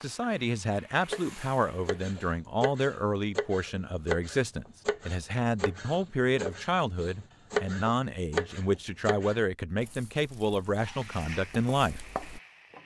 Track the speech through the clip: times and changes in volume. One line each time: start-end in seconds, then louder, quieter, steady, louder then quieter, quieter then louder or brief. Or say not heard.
0.0-12.0 steady.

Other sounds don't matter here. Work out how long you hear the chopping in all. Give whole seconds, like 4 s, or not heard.
11 s.